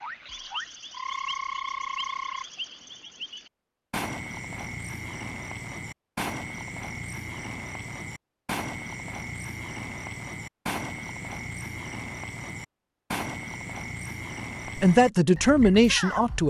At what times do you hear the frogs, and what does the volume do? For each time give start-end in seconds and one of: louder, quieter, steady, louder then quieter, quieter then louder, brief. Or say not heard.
0.0-16.4 steady.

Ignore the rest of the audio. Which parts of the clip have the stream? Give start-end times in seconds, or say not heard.
not heard.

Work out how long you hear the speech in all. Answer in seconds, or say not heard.
2 s.